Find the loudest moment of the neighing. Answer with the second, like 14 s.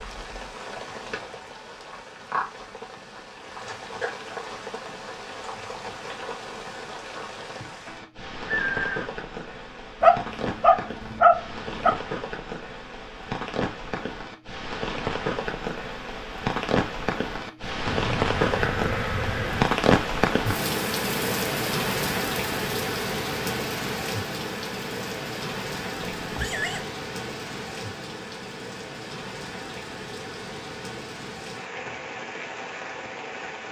9 s.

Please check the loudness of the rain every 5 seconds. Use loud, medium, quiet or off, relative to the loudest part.
medium, medium, medium, loud, loud, medium, medium.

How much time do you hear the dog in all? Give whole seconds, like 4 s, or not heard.
2 s.